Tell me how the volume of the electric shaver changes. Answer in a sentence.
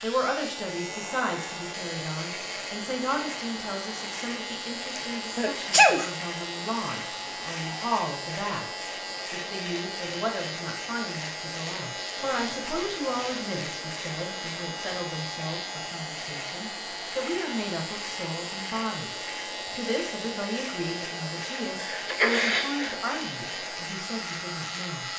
The loudness of the electric shaver stays about the same.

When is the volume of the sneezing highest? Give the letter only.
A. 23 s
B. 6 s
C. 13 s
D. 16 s
B.